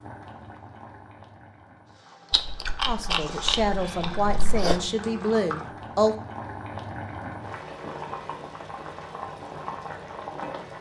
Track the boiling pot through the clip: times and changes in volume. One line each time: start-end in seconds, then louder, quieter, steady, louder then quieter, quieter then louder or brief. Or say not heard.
0.0-10.7 louder.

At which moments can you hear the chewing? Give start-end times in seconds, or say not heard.
2.3-4.9.